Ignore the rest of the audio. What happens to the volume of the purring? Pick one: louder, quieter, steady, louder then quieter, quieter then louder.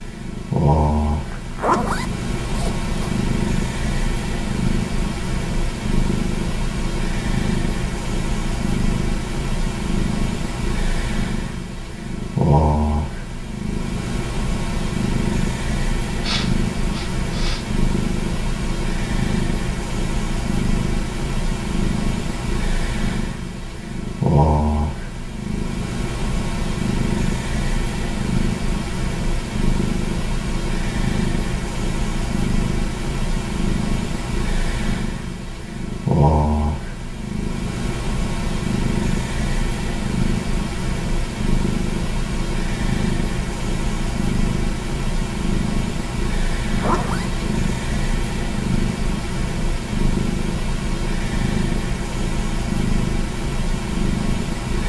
steady.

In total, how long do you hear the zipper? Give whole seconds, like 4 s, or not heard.
2 s.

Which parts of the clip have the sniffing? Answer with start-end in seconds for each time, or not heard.
16.2-17.6.